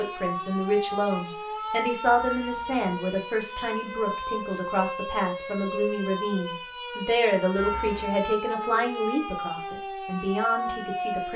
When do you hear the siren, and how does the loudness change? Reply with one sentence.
The siren can be heard from 0.0 to 11.3 s, at a steady volume.